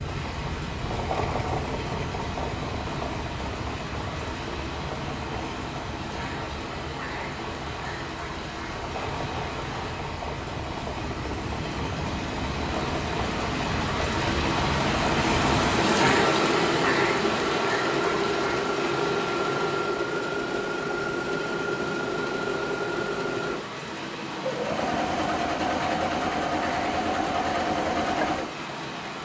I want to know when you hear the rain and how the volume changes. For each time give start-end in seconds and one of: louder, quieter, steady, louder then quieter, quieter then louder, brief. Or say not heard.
0.0-29.2 louder then quieter.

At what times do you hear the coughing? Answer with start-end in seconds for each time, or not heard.
not heard.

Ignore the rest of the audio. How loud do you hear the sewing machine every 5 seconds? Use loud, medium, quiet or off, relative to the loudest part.
medium, medium, medium, loud, loud, loud.